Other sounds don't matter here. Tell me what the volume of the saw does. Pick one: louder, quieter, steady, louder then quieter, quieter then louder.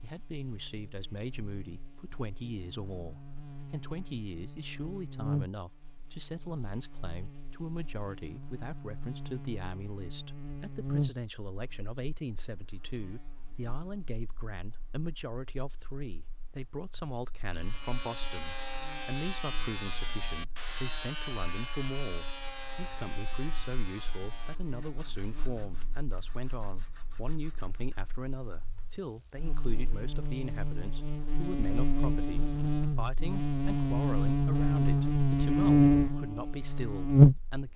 quieter.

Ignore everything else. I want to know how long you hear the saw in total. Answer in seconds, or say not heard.
11 s.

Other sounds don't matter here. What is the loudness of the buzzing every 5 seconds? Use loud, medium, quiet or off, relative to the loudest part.
quiet, quiet, quiet, quiet, quiet, quiet, medium, loud.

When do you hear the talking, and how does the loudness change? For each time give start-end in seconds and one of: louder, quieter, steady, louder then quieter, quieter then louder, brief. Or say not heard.
0.0-37.7 steady.